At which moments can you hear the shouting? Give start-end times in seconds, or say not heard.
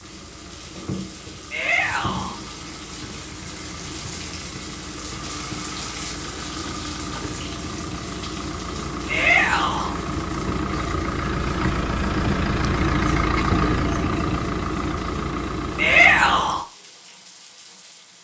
1.5-2.4, 9.1-9.9, 15.8-16.6.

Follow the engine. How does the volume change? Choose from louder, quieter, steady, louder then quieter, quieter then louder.
louder.